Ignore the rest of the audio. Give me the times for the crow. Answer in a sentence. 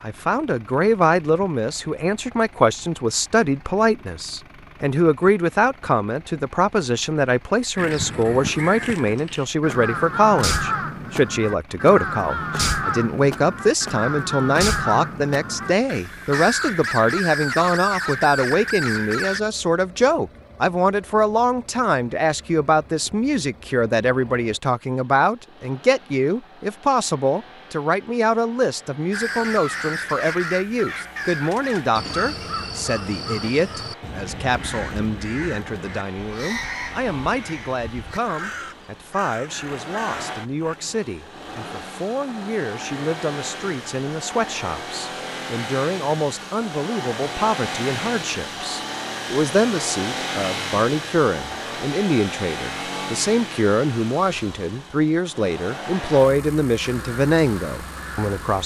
You can hear the crow from 7.8 to 19.4 s, from 29.1 to 40.8 s and from 56.8 to 58.6 s.